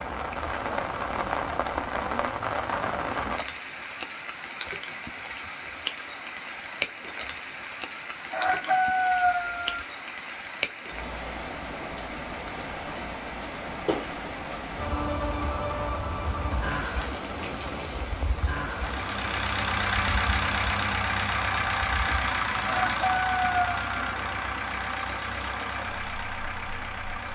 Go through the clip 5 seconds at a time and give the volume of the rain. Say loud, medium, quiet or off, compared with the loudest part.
loud, loud, loud, loud, medium, quiet.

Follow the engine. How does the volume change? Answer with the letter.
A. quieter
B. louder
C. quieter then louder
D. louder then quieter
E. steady
A.